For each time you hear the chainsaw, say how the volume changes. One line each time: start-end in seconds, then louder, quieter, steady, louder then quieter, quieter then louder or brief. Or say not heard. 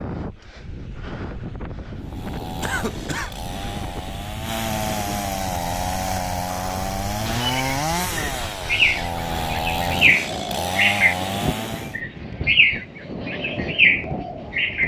1.9-12.0 louder.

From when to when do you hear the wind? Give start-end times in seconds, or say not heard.
0.0-14.8.